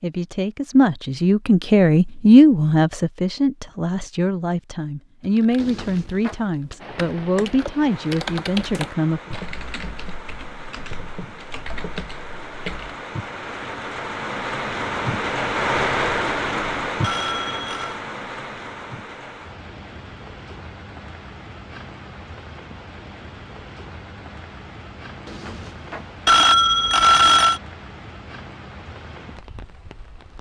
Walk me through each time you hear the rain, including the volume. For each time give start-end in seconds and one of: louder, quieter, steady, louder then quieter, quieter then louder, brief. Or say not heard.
6.8-30.3 louder then quieter.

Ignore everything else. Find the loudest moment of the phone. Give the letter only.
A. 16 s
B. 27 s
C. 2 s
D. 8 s
B.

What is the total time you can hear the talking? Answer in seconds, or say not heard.
9 s.